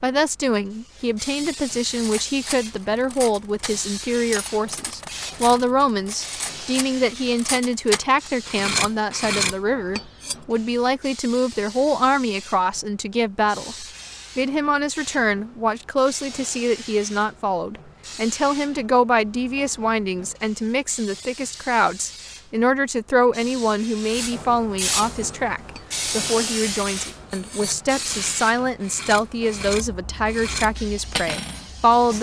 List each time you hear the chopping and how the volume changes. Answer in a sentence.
You can't hear the chopping here.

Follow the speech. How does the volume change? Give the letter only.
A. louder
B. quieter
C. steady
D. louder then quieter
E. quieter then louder
C.